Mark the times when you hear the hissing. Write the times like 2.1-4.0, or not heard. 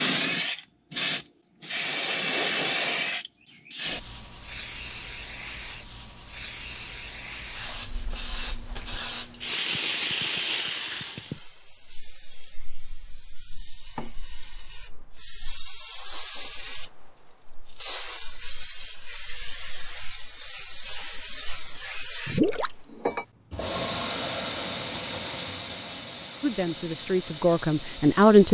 0.0-28.4.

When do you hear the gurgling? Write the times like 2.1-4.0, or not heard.
22.2-22.9.